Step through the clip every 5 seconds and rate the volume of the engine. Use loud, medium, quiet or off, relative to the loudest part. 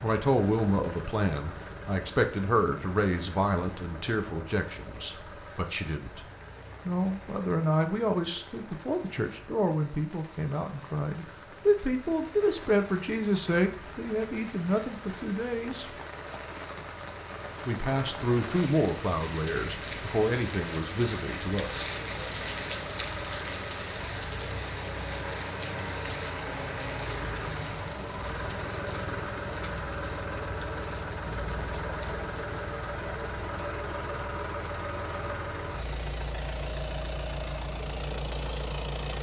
medium, quiet, quiet, medium, loud, loud, loud, loud.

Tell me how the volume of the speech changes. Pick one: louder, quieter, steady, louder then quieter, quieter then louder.
steady.